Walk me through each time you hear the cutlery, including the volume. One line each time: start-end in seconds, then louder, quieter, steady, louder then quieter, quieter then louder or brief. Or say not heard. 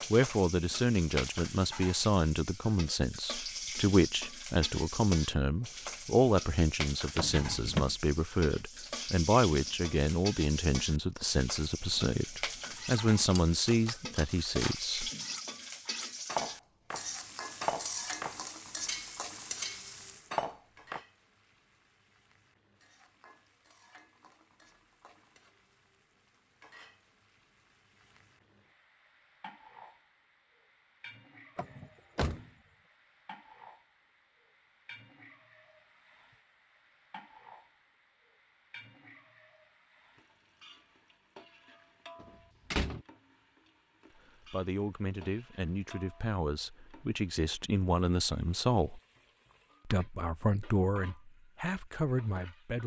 12.8-21.0 louder.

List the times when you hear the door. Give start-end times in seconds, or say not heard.
7.2-8.0, 31.6-32.5, 42.2-43.0.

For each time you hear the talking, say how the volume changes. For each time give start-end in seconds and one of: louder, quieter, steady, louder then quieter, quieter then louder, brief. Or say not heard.
0.1-15.1 steady
44.5-49.0 louder
49.9-52.8 brief.